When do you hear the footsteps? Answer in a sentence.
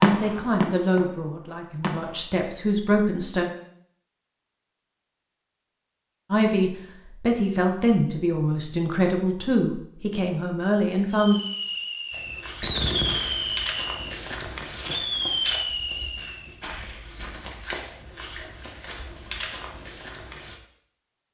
The footsteps can be heard from 12.1 to 20.6 s.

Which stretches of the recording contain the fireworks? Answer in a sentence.
The fireworks can be heard from 0.0 to 2.1 s and from 11.1 to 16.5 s.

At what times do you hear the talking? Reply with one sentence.
You can hear the talking from 0.0 to 3.5 s and from 6.3 to 11.4 s.